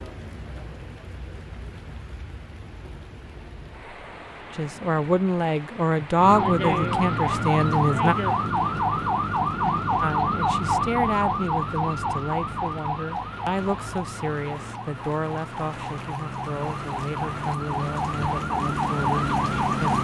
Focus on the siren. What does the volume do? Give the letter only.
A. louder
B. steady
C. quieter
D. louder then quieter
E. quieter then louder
E.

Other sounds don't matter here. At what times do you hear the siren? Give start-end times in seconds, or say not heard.
6.2-19.9.